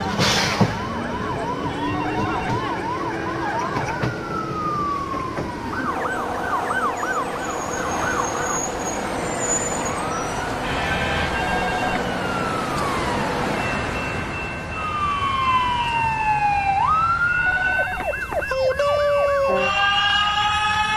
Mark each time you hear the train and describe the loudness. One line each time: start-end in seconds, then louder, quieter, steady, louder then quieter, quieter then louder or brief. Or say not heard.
0.0-20.9 quieter.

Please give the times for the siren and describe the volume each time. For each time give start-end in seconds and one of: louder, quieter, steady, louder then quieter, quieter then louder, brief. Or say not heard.
0.0-20.9 louder.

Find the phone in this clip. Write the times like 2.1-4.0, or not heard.
1.9-2.6, 11.3-12.1, 17.4-18.6.